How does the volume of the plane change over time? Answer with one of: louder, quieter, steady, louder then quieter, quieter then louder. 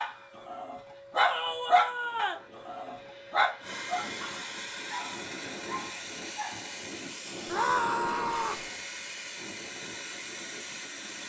louder.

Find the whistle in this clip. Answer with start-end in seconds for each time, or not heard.
not heard.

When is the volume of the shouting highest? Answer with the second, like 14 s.
8 s.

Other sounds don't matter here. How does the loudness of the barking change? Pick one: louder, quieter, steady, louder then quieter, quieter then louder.
quieter.